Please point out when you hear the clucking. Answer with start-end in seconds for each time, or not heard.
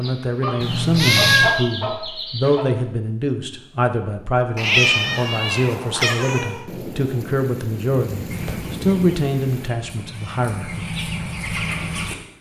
0.0-2.6, 8.3-12.2.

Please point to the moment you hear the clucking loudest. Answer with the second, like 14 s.
1 s.